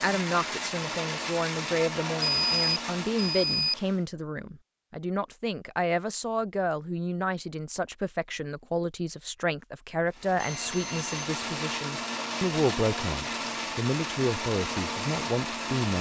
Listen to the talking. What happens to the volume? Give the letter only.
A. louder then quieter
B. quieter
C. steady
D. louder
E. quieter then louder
C.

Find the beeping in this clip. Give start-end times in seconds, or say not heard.
2.2-3.8, 10.3-11.3.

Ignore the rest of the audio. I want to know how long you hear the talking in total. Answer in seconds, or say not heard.
16 s.